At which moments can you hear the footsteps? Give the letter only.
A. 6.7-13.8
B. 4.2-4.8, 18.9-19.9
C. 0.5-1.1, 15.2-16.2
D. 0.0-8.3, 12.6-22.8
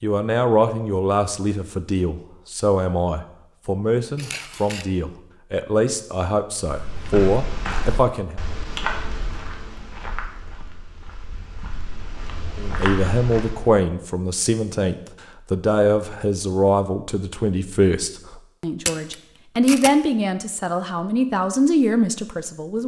A.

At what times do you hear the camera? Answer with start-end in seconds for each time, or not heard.
4.2-4.8, 18.9-19.9.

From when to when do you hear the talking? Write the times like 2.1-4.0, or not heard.
0.0-8.3, 12.6-22.8.